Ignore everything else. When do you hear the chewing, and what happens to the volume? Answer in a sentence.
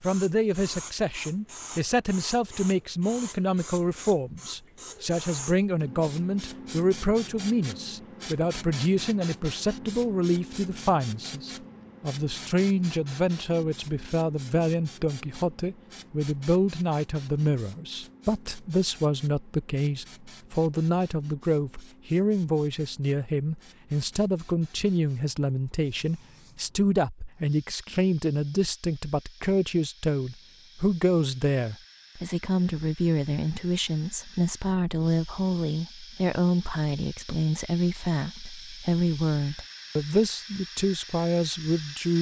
The chewing can't be heard in this clip.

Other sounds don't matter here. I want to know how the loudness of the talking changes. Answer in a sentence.
The loudness of the talking stays about the same.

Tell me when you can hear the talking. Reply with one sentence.
The talking can be heard from 0.0 to 42.1 s.